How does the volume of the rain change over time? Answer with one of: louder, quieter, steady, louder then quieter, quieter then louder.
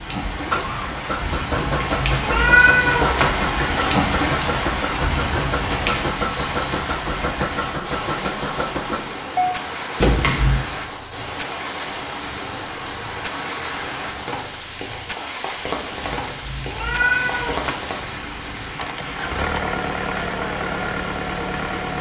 quieter.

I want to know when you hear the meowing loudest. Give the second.
3 s.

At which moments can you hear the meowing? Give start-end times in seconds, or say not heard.
1.6-3.4, 10.0-10.7, 16.0-17.8.